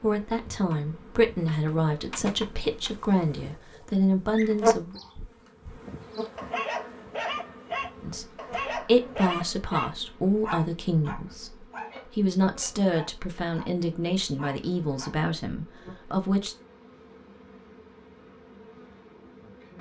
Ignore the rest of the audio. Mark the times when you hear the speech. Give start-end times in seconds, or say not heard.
0.0-5.0, 8.0-16.6.